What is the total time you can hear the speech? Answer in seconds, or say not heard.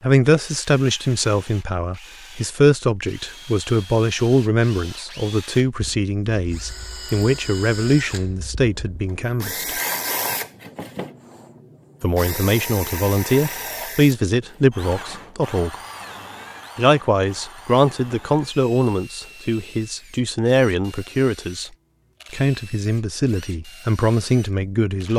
21 s.